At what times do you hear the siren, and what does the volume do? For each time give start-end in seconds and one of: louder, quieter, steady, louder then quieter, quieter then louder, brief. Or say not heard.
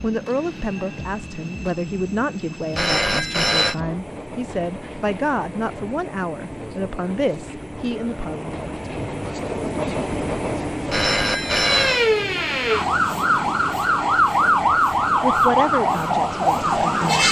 11.3-17.2 steady.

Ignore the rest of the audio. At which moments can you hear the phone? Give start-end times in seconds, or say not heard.
2.8-3.8, 10.9-12.1.